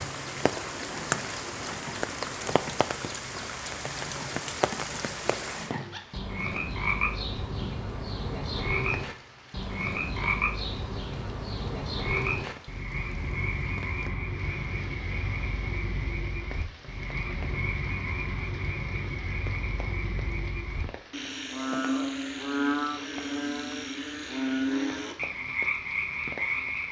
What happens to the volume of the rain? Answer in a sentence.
The volume of the rain goes down.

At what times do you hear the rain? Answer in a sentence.
You can hear the rain from 0.0 to 26.8 s.